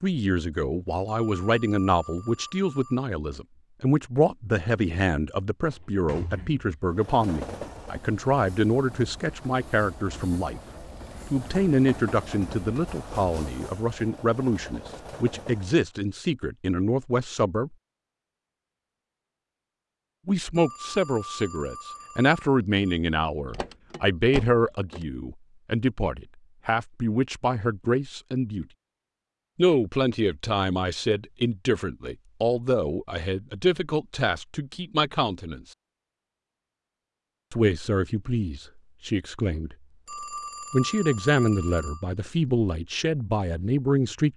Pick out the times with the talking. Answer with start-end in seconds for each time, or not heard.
0.0-10.6, 11.3-17.7, 20.2-28.6, 29.6-35.6, 37.5-39.8, 40.7-44.3.